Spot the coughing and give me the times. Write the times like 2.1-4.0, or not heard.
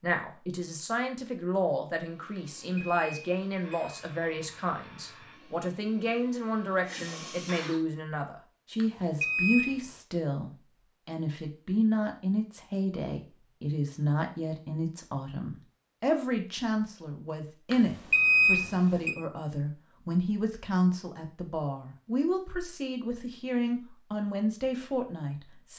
not heard.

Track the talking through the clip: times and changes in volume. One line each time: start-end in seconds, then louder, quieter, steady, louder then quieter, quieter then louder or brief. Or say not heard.
0.0-25.7 steady.